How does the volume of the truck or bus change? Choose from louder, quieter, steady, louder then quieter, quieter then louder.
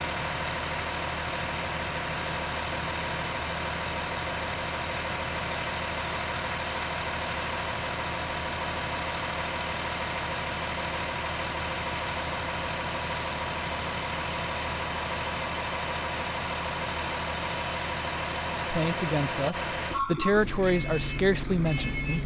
steady.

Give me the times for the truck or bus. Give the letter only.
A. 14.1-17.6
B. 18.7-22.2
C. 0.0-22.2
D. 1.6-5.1
C.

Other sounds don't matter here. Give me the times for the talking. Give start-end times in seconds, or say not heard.
18.7-22.2.